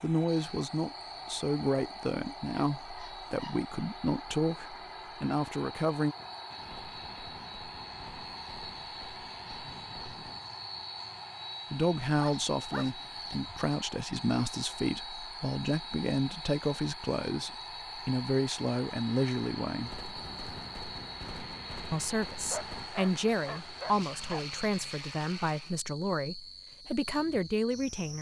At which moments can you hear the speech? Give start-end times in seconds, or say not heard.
0.0-6.2, 11.7-20.0, 21.9-28.1.